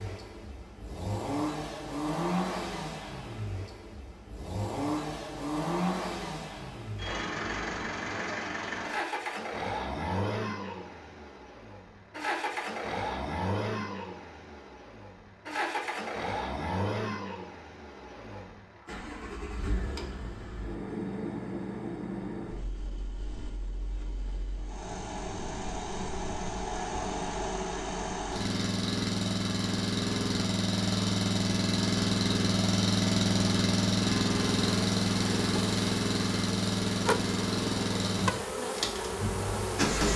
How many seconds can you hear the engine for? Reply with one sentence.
You can hear the engine for 40 seconds altogether.